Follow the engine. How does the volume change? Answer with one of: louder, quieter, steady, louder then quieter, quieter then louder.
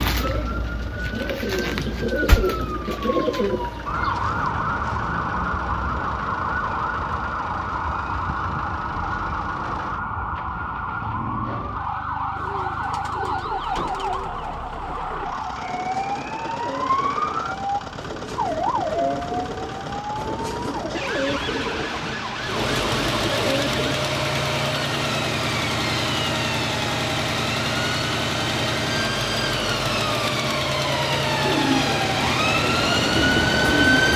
louder.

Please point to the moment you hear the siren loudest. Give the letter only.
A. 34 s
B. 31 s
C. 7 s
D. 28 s
A.